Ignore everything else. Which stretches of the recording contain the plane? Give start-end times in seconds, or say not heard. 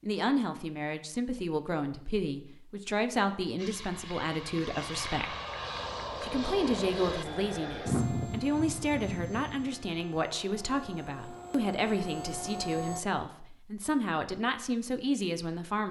3.5-13.0.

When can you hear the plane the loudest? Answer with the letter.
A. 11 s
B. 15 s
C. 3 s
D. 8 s
D.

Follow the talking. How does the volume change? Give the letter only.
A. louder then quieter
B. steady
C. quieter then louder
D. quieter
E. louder
B.